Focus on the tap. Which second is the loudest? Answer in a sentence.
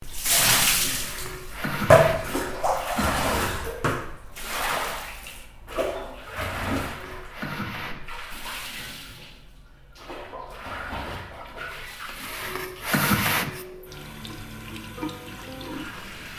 The volume of the tap peaks at 2 seconds.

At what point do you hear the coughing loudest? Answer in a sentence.
The loudest moment of the coughing is at 13 seconds.